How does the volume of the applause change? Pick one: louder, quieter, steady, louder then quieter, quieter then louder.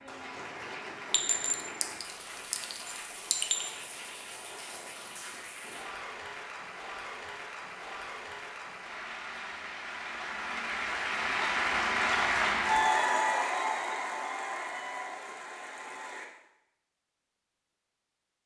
louder.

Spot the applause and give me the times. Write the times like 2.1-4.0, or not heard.
0.0-16.2.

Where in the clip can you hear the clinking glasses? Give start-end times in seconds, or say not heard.
1.1-3.7.